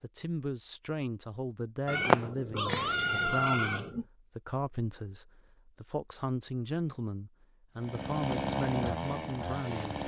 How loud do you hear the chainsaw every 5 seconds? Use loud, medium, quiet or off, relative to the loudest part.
off, loud.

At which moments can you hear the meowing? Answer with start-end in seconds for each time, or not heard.
1.9-4.0.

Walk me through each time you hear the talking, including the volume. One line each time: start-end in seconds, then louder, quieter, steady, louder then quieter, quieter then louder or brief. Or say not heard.
0.0-10.0 steady.